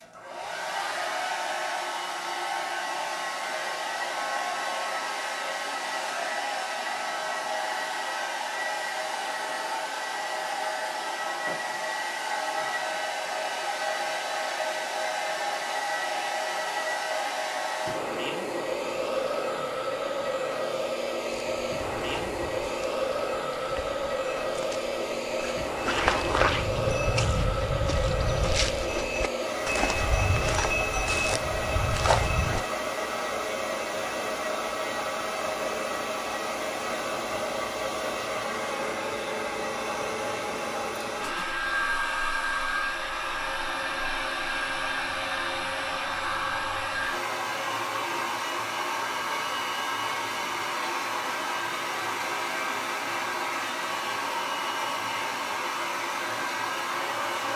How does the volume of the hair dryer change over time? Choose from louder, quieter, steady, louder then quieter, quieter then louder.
steady.